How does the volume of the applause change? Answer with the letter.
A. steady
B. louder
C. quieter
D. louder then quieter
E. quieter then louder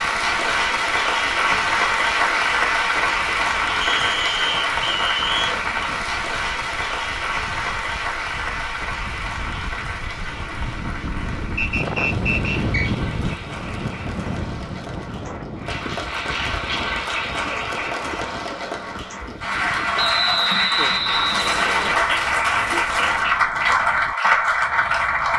E.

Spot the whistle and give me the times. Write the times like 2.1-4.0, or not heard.
3.8-5.6, 11.6-12.9, 19.9-21.9.